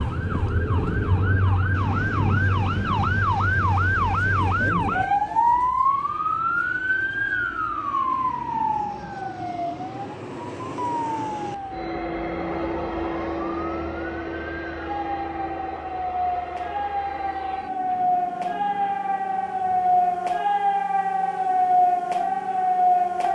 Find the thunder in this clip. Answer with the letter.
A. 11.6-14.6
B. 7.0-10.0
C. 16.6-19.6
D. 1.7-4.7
D.